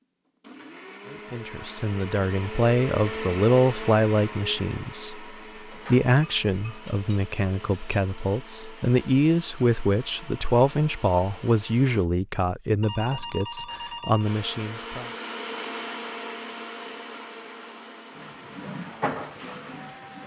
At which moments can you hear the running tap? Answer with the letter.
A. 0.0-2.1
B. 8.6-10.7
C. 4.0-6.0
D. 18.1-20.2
D.